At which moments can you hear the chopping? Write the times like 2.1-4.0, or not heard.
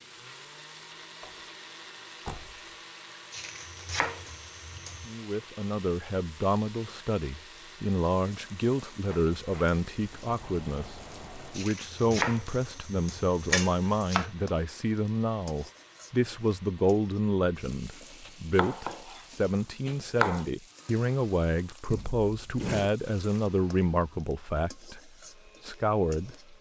3.3-5.1, 11.6-14.3, 17.9-20.4.